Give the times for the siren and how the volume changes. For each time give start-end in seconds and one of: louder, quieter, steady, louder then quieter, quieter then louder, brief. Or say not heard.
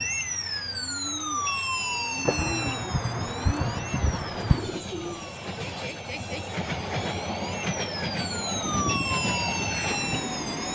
0.0-10.7 quieter then louder.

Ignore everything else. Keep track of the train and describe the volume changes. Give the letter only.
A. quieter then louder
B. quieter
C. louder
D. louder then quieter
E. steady
C.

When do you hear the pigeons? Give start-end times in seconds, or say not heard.
0.0-5.3.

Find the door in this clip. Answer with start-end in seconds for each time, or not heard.
not heard.